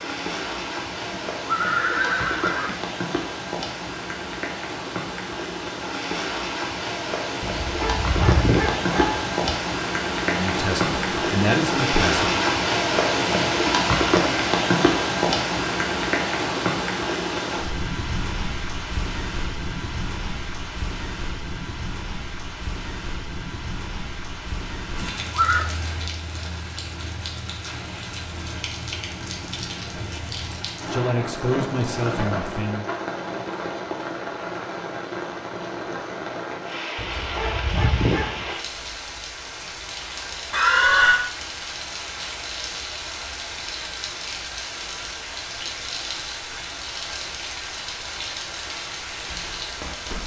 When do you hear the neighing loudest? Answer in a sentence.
The loudest moment of the neighing is at 41 seconds.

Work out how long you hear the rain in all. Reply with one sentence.
You can hear the rain for 50 seconds altogether.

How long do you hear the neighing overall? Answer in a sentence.
The neighing can be heard for 3 seconds in total.